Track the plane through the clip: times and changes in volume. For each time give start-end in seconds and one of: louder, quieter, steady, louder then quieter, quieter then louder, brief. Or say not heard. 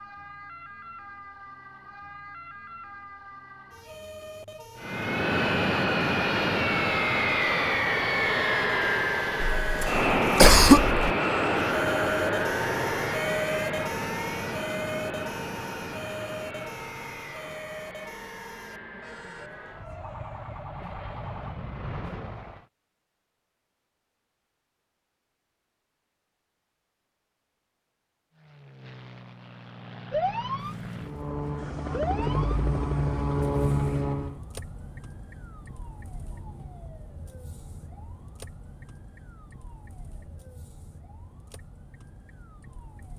4.8-22.6 quieter
28.3-34.4 louder.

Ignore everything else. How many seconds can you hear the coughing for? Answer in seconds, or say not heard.
2 s.